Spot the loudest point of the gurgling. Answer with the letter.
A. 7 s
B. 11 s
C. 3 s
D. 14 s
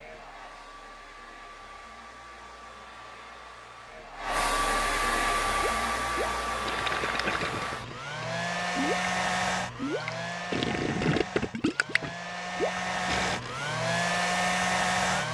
B.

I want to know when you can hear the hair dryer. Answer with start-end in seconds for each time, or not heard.
0.0-15.2.